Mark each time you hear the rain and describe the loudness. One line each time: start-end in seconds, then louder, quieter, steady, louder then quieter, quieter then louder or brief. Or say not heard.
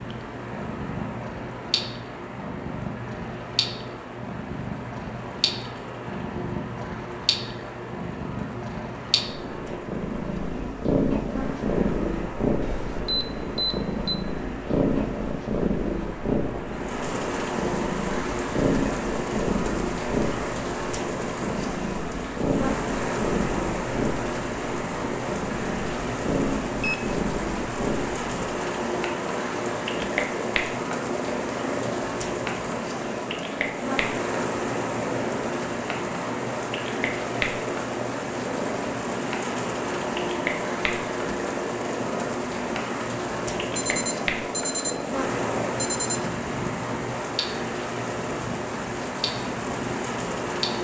0.0-50.7 louder.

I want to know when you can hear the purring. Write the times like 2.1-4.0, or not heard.
0.0-50.7.